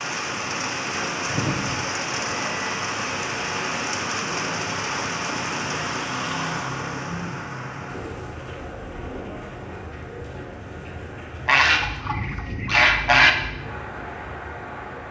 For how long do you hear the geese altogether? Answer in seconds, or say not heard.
2 s.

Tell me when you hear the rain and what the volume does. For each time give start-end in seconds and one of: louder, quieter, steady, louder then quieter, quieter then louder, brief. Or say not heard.
0.0-15.0 quieter.